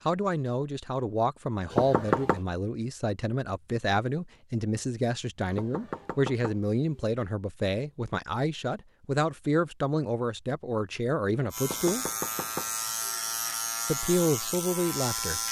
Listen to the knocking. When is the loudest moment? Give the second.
2 s.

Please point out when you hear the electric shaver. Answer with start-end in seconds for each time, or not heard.
11.5-15.4.